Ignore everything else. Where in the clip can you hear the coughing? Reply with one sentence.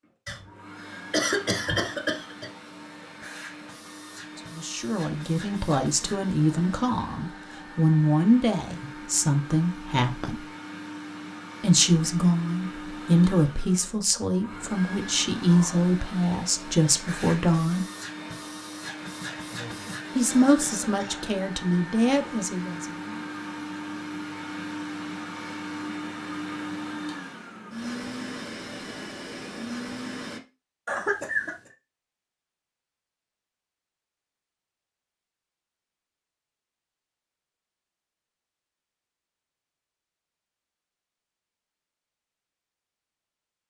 The coughing can be heard from 0.2 to 2.5 s, from 19.5 to 21.2 s and from 30.9 to 31.6 s.